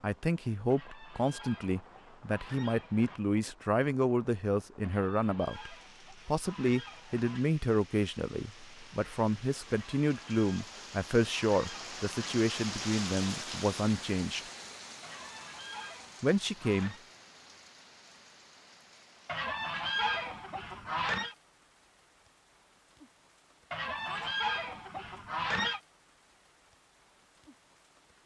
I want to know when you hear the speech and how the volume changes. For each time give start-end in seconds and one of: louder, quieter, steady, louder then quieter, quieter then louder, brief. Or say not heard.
0.0-14.5 steady
16.2-16.9 brief.